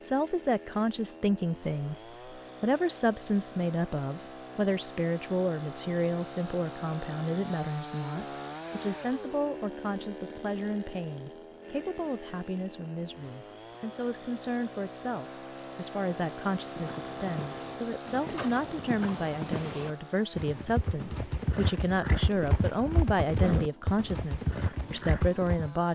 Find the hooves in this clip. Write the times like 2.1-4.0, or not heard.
16.9-25.7.